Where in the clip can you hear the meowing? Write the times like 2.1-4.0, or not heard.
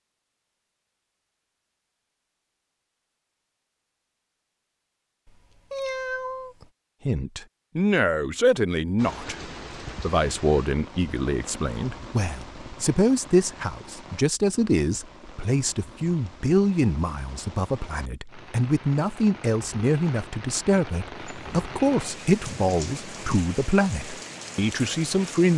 5.2-6.7, 21.1-23.4.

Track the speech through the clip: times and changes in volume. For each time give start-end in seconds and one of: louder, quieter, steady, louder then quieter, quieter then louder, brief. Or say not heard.
7.0-25.5 steady.